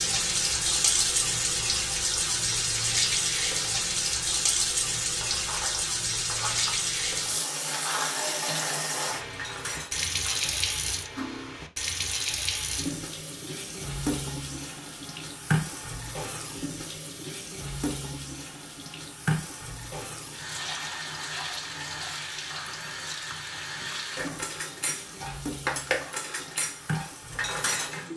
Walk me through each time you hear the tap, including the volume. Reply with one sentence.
You can hear the tap from 0.0 to 28.1 s, getting quieter.